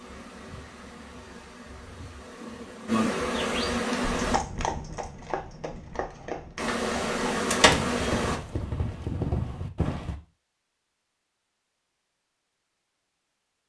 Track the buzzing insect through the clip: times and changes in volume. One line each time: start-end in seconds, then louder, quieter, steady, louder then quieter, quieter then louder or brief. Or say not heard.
0.0-4.4 louder
6.5-8.4 brief.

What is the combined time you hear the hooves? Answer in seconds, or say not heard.
6 s.